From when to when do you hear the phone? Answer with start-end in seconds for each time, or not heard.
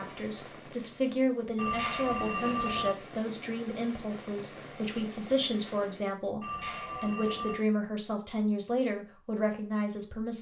1.6-3.0, 6.4-7.6.